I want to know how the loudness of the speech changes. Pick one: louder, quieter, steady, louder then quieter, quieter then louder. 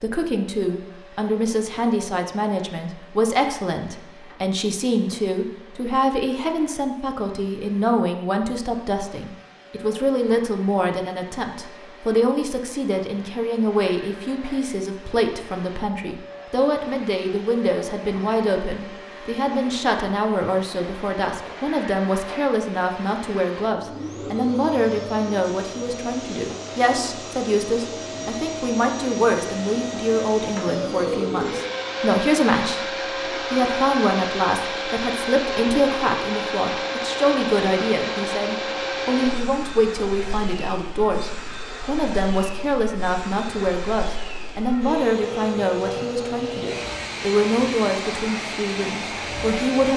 steady.